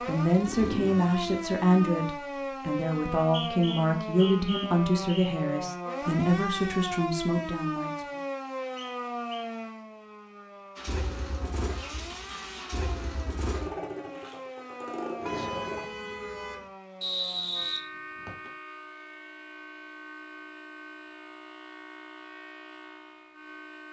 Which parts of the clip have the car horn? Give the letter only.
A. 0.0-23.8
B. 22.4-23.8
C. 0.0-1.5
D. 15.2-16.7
D.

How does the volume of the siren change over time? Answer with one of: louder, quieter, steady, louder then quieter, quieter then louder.
quieter.